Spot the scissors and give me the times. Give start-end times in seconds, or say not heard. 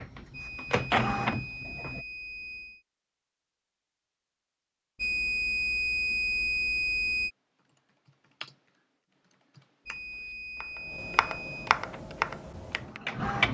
not heard.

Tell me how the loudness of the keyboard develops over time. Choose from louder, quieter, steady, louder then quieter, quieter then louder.
quieter then louder.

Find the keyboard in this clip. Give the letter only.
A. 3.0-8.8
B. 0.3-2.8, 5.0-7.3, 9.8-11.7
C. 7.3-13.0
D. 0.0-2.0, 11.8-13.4
C.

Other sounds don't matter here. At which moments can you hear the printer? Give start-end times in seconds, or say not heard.
0.0-2.0, 11.8-13.4.